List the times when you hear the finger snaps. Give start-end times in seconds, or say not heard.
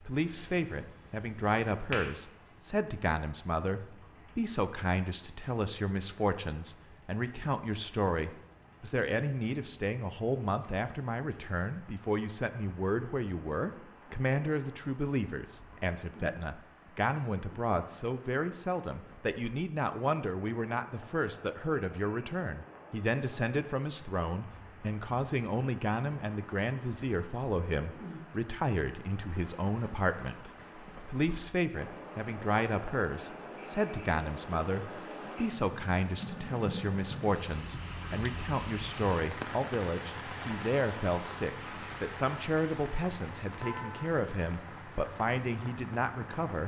0.3-2.1.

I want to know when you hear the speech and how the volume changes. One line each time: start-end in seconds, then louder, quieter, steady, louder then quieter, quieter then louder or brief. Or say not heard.
0.1-46.6 steady.